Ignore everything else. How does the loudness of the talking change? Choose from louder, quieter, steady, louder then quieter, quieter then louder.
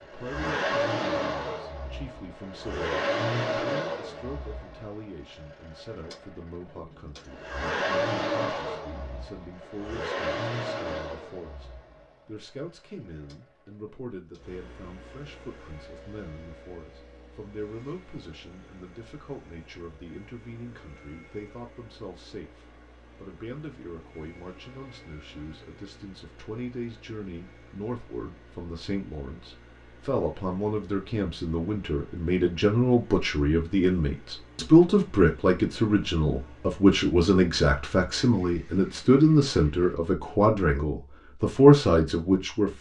louder.